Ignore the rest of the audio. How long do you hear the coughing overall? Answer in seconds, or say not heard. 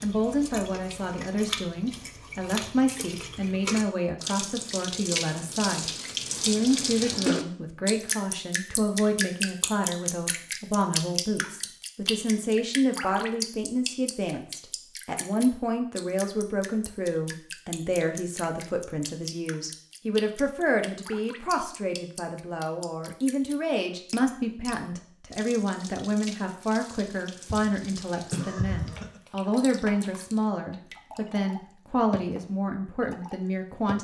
2 s.